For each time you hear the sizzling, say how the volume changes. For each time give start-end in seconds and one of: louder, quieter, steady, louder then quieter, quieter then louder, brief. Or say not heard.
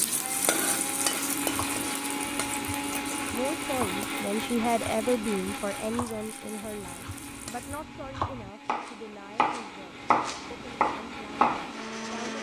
0.0-7.8 quieter.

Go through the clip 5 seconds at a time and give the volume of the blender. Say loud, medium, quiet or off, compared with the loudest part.
loud, medium, medium.